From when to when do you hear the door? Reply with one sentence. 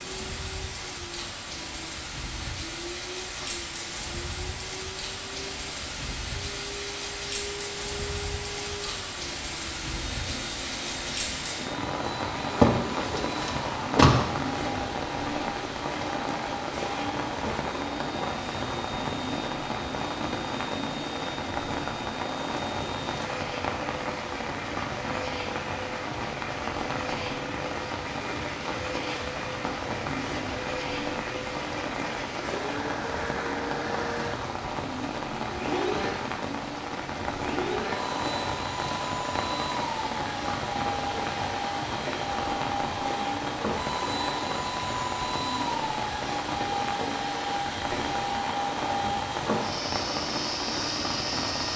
The door can be heard from 12.6 to 14.2 s.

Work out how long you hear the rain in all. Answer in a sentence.
You can hear the rain for 52 seconds altogether.